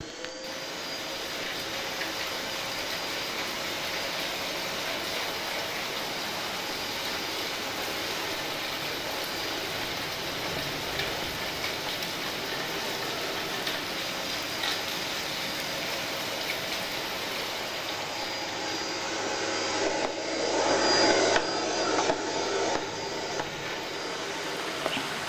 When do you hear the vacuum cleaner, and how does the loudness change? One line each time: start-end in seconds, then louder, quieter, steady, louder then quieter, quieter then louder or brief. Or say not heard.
0.0-25.2 louder.